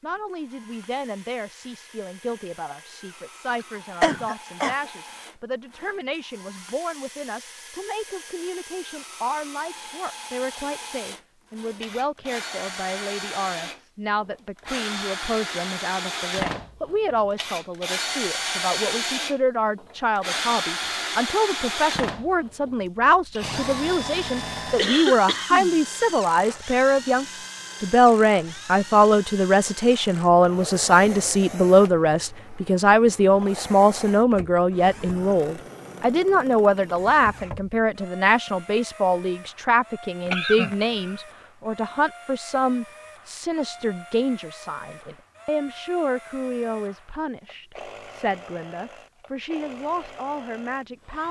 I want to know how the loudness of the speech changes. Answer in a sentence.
The volume of the speech goes up, then down.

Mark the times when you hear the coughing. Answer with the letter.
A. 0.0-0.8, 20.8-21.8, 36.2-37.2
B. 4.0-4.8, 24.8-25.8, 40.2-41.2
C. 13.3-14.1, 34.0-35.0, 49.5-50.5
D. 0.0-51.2
B.